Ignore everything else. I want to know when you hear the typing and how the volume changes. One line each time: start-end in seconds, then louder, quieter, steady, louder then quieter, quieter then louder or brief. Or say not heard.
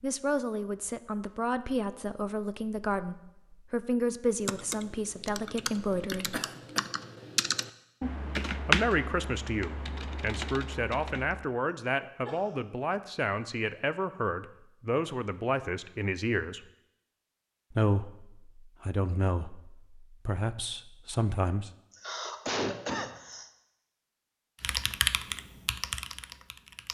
4.3-11.4 louder then quieter
24.6-26.8 brief.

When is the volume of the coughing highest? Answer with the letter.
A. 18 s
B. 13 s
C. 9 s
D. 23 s
D.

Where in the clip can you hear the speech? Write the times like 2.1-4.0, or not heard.
0.0-6.4, 8.7-16.6, 17.7-21.7.